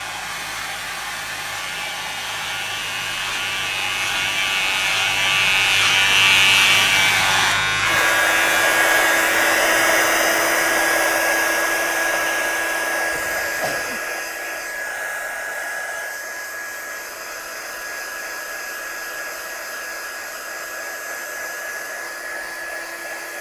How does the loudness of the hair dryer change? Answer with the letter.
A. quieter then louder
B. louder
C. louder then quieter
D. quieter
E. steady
C.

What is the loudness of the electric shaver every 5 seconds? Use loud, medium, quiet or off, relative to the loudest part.
medium, loud, quiet, off, off.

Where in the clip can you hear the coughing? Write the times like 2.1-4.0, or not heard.
13.1-14.0.